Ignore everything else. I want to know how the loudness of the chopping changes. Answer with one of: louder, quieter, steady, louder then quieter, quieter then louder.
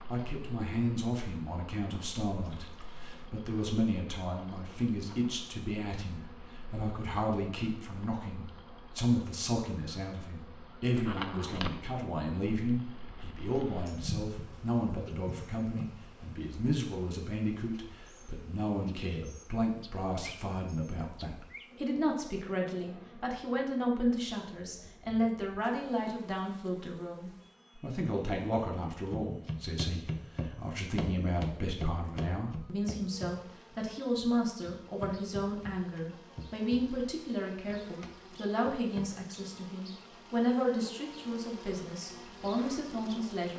quieter.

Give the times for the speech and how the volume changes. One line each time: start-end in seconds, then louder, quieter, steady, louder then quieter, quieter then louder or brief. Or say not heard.
0.1-43.5 steady.